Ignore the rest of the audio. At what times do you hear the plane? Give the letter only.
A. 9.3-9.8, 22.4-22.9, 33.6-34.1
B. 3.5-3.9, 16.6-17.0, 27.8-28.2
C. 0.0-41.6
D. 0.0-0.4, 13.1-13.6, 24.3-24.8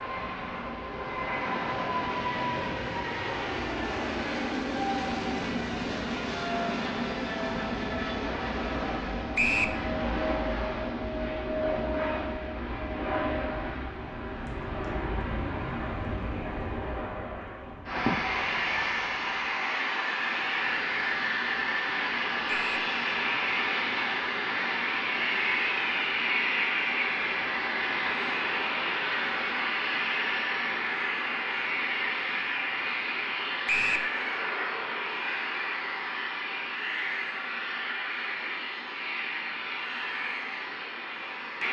C.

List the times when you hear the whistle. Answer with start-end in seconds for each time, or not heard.
9.3-9.8, 22.4-22.9, 33.6-34.1.